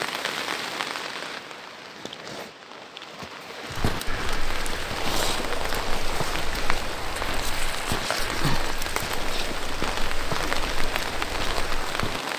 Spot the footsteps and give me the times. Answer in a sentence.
The footsteps can be heard from 3.8 to 12.2 s.